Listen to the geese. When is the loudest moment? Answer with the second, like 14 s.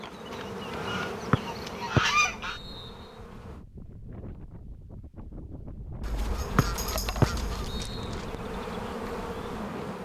2 s.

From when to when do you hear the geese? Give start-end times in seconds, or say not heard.
0.3-2.6, 6.0-7.9.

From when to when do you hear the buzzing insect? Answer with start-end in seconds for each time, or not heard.
0.0-3.6, 6.2-10.0.